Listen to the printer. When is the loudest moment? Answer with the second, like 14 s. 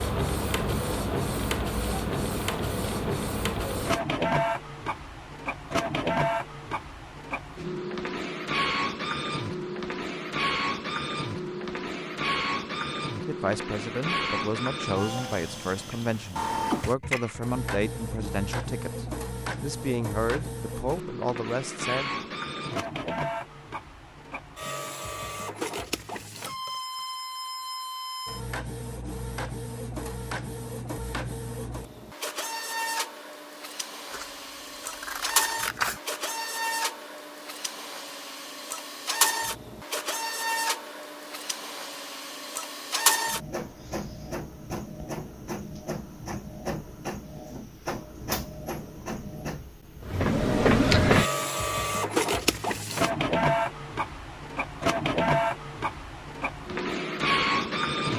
51 s.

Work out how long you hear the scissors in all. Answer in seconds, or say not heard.
2 s.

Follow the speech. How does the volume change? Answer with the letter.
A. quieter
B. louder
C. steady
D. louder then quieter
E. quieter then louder
C.